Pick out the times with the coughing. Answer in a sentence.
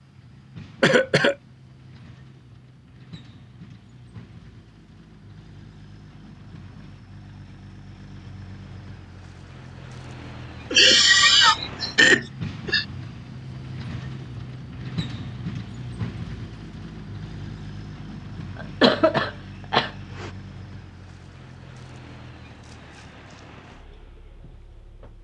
The coughing can be heard from 0.8 to 1.4 s, from 10.7 to 12.8 s and from 18.8 to 20.3 s.